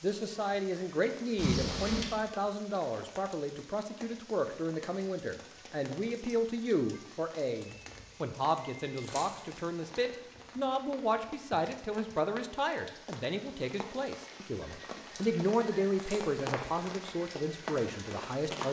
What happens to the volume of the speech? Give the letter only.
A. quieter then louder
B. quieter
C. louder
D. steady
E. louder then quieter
D.